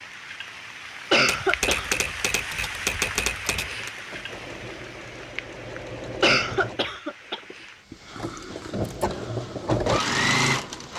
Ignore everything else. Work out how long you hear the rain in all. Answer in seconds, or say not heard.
11 s.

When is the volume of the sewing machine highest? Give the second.
10 s.